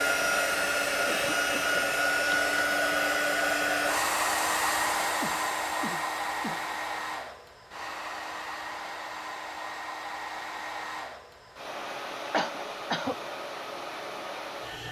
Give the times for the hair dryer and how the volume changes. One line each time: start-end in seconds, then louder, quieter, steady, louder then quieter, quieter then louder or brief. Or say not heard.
0.0-14.8 quieter.